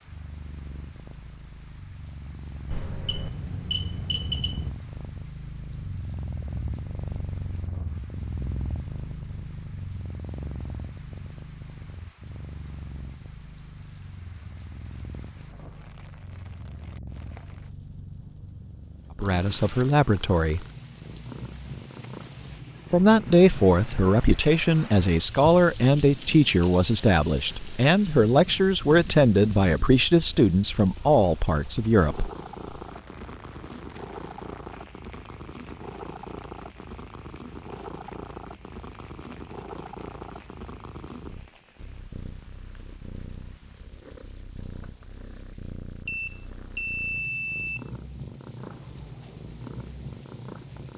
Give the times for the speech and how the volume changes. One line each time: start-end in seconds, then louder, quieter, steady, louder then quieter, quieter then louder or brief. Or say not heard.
19.1-20.6 brief
22.9-32.3 steady.